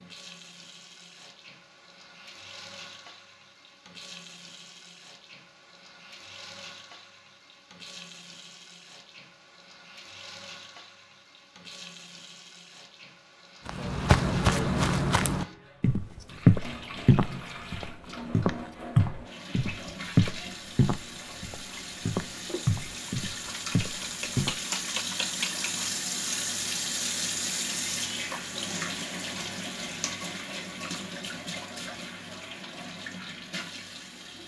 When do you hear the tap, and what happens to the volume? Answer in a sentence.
You can hear the tap from 0.0 to 34.4 s, getting louder.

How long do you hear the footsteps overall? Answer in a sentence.
The footsteps can be heard for 11 seconds in total.